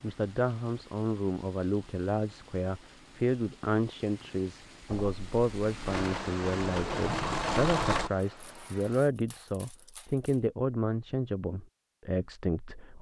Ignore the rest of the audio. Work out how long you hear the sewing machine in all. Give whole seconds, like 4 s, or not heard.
3 s.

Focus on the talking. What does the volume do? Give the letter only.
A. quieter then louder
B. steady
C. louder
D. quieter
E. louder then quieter
B.